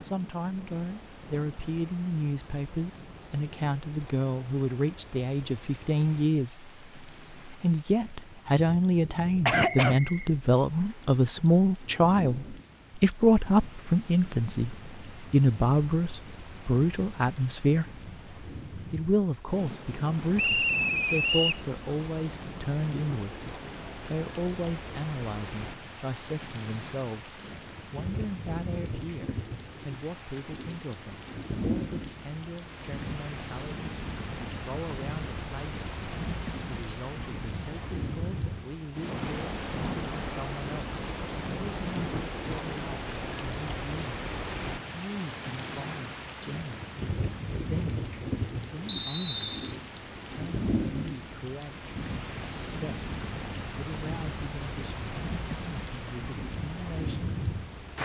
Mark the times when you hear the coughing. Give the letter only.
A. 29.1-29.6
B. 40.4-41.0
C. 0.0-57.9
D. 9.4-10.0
D.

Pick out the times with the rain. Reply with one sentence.
You can hear the rain from 0.0 to 57.9 s.